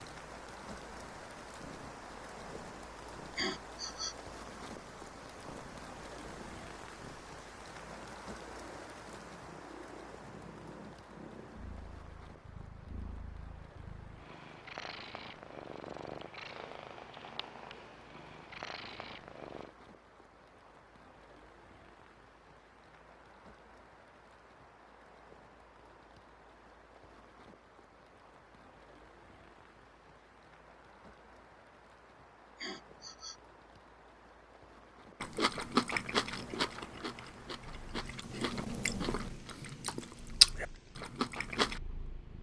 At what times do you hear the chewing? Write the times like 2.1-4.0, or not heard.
35.2-41.8.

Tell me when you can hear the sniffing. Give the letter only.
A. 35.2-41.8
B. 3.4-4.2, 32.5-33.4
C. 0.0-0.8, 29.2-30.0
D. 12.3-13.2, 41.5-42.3
B.